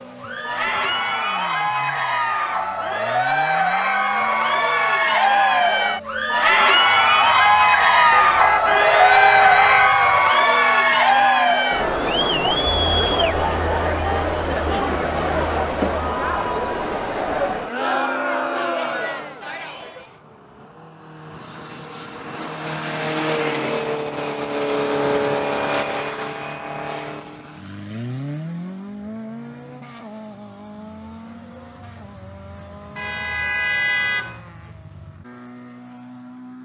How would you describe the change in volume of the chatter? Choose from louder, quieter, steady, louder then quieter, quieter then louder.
louder then quieter.